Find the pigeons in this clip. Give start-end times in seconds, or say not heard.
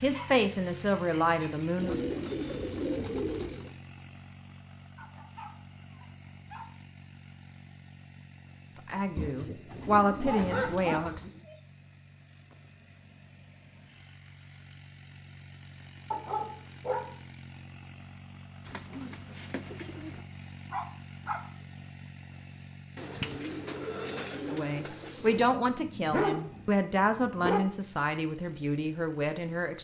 1.8-3.7, 9.2-11.4, 18.6-20.2, 22.9-25.6.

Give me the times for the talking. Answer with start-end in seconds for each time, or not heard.
0.0-1.9, 8.8-11.2, 24.4-29.7.